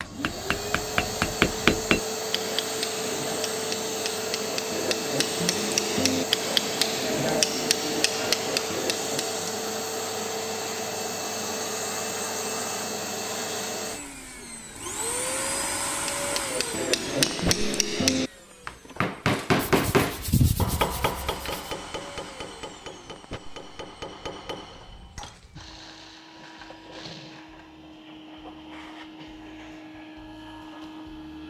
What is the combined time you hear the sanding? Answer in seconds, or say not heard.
2 s.